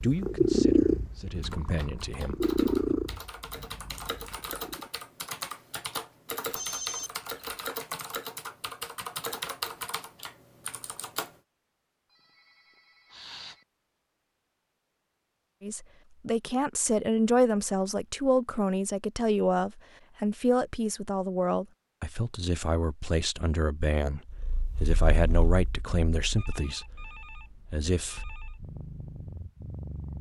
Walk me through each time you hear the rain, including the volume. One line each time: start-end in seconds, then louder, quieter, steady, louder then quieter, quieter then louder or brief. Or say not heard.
not heard.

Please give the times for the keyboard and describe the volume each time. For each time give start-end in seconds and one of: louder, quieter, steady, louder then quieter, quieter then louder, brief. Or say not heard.
1.3-11.3 louder.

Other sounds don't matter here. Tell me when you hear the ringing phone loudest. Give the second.
7 s.